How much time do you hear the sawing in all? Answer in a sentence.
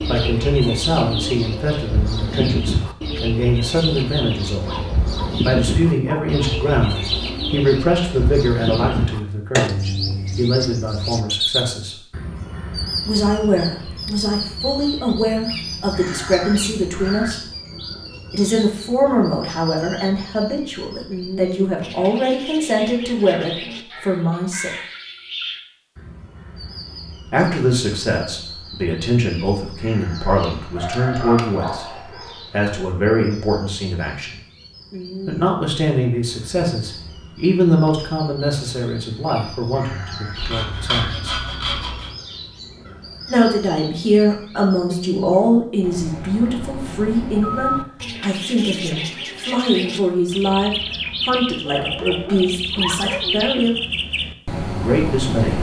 The sawing can be heard for 2 seconds in total.